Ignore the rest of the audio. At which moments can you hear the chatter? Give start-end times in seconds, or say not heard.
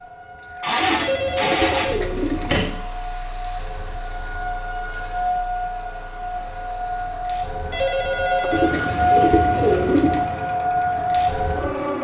not heard.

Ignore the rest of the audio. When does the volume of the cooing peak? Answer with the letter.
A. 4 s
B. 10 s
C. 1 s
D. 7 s
B.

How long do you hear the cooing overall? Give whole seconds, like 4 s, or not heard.
4 s.